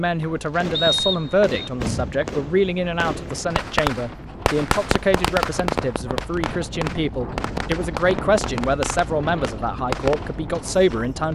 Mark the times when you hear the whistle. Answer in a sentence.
The whistle can be heard from 0.7 to 1.7 s.